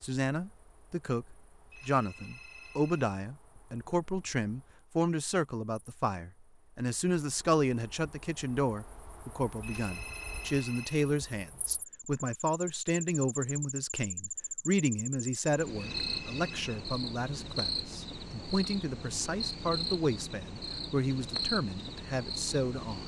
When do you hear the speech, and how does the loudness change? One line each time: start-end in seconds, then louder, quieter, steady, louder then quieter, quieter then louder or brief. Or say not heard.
0.0-23.0 steady.